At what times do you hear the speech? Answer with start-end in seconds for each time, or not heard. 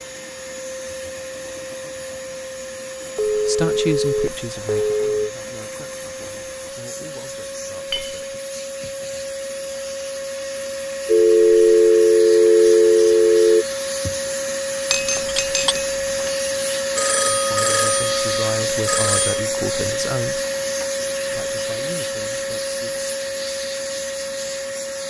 3.3-8.4, 17.3-20.4, 21.3-23.1.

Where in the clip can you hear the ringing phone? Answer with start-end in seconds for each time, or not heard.
3.1-5.2, 11.1-13.7, 16.9-19.4.